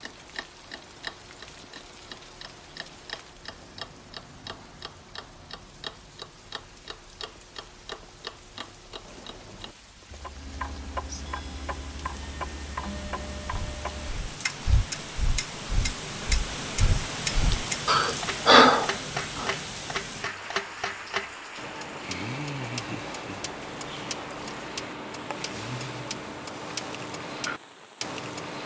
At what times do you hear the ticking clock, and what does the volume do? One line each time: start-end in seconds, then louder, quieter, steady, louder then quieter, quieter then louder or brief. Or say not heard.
0.0-28.6 louder.